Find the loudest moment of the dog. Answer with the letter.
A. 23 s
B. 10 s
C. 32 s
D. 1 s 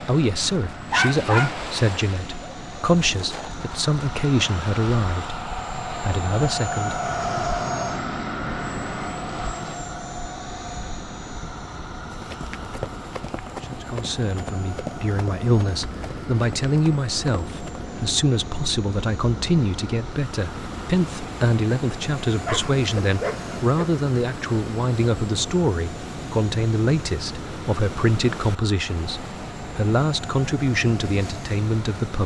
D.